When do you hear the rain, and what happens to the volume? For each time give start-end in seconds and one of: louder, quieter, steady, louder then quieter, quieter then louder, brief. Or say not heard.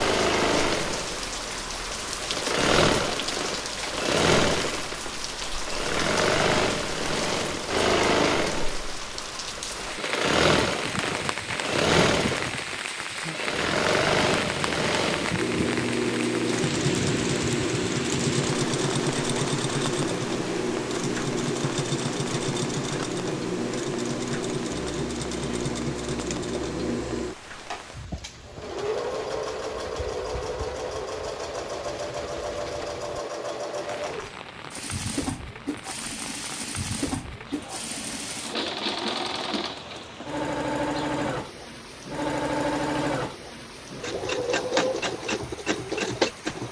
0.1-46.6 quieter.